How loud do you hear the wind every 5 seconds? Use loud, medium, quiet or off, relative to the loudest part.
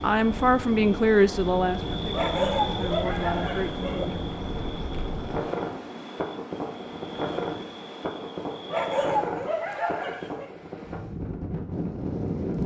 medium, loud, loud.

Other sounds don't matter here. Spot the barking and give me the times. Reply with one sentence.
You can hear the barking from 2.1 to 4.0 s and from 8.7 to 10.5 s.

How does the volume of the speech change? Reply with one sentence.
The loudness of the speech goes down, then up.